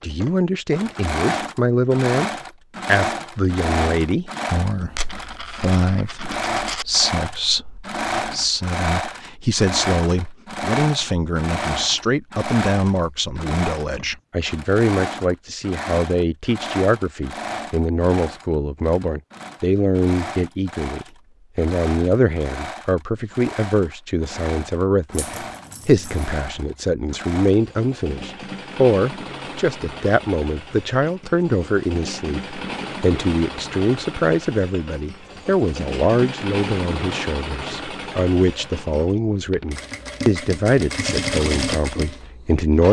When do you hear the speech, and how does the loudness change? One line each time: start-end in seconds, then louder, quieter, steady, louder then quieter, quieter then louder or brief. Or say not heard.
0.0-42.8 steady.